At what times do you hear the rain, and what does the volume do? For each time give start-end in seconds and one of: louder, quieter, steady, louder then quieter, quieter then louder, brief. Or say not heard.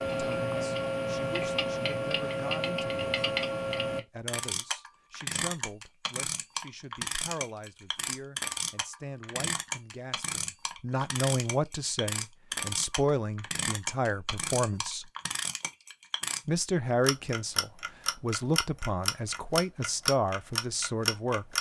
not heard.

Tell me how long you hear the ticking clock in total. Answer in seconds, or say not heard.
21 s.